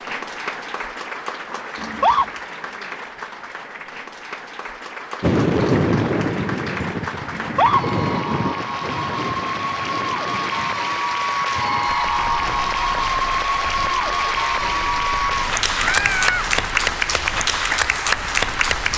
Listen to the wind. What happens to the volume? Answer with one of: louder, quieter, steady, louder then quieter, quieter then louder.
quieter.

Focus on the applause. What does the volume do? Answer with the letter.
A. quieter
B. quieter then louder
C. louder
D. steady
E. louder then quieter
C.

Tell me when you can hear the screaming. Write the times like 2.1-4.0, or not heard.
1.8-2.2, 7.3-7.8, 15.8-16.5.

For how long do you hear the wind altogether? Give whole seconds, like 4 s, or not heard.
14 s.